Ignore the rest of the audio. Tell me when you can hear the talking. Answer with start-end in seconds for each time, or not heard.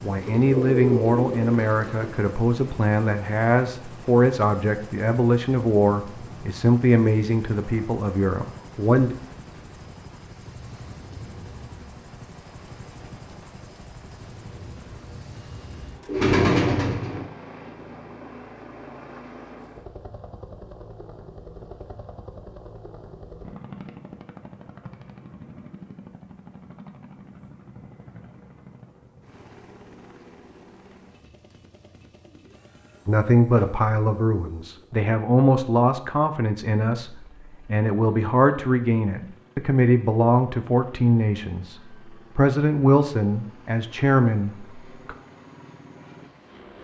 0.0-9.2, 33.0-45.1.